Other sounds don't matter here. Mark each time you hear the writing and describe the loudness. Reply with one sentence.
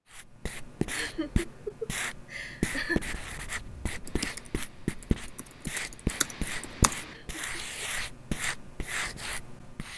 You can hear the writing from 0.1 to 9.9 s, at a steady volume.